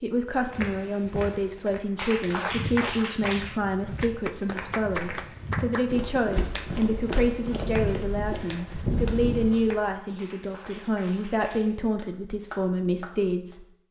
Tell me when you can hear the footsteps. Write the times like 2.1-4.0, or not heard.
0.3-9.8.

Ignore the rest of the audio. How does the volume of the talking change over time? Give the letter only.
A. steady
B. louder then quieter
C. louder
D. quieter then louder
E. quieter
A.